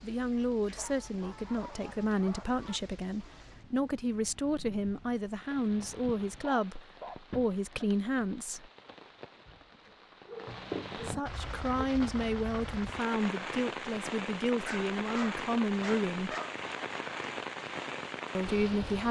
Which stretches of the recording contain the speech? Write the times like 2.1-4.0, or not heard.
0.0-8.7, 10.9-16.4, 18.4-19.0.